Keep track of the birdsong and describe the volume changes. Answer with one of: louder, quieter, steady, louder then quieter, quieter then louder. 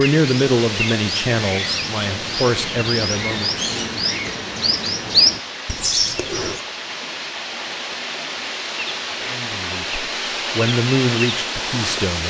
louder.